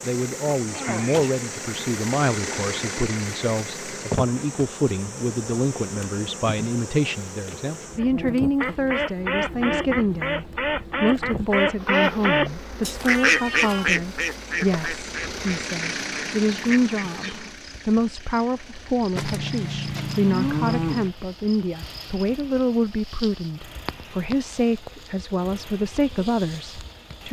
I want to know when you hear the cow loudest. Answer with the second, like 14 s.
21 s.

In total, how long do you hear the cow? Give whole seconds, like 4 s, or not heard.
2 s.